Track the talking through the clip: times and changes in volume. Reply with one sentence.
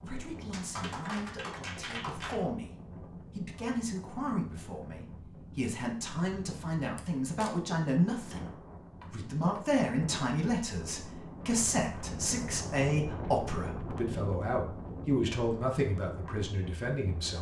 You can hear the talking from 0.0 to 17.3 s, getting louder.